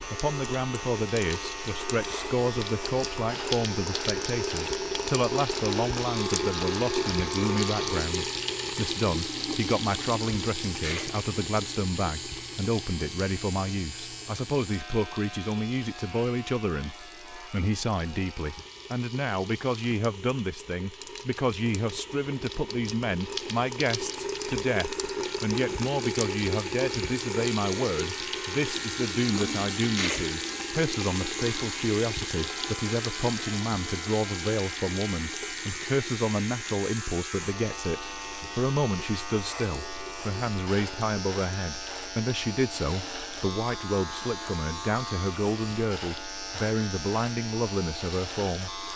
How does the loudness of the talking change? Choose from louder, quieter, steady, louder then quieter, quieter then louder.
steady.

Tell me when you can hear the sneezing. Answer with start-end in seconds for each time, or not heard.
10.2-11.1, 29.4-30.2.